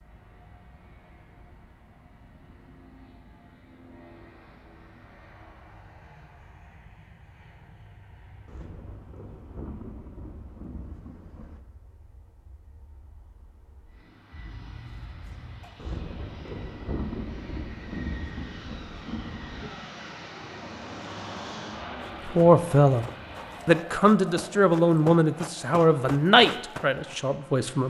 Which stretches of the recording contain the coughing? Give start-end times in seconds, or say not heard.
14.3-15.7.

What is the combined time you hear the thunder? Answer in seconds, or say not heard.
7 s.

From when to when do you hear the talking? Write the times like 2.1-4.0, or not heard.
22.2-23.1, 23.6-27.8.